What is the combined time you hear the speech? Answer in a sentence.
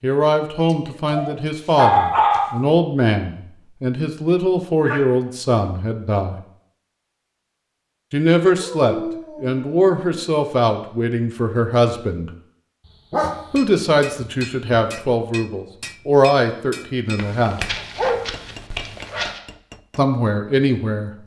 You can hear the speech for 16 seconds altogether.